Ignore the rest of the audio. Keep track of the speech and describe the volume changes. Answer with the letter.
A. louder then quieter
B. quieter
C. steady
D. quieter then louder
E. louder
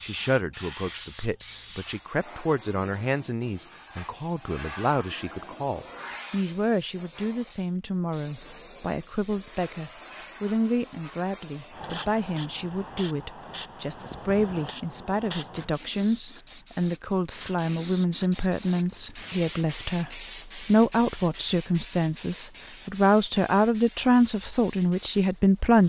E.